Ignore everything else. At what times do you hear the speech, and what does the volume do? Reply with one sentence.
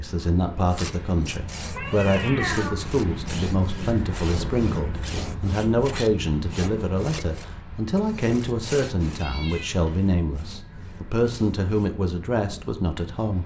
The speech can be heard from 0.0 to 13.4 s, at a steady volume.